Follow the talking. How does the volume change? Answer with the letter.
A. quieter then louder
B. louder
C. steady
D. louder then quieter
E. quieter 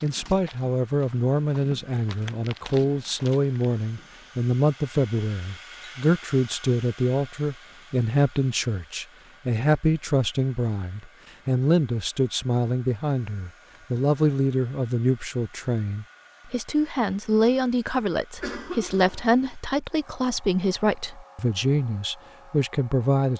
C.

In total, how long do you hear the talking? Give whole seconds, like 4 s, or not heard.
23 s.